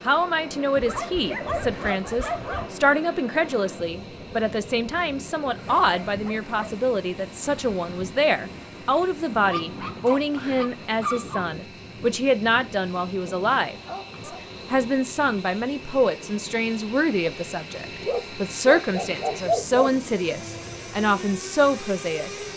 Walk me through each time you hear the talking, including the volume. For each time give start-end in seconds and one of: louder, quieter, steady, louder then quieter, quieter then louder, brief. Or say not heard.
0.0-22.4 steady.